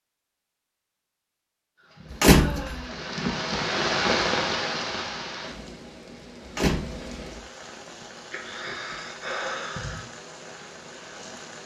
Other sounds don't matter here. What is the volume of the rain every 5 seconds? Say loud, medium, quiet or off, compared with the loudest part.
loud, quiet, quiet.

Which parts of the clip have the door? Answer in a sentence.
The door can be heard from 2.1 to 2.9 s and from 6.5 to 7.1 s.